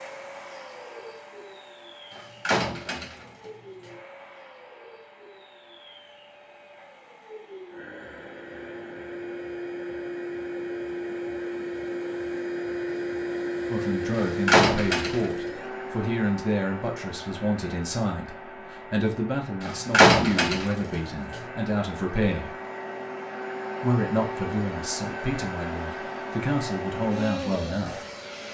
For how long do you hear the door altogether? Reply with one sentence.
You can hear the door for 4 seconds altogether.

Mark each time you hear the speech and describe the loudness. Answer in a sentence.
The speech can be heard from 13.7 to 22.6 s, at a steady volume; and from 23.8 to 28.0 s, getting quieter then louder.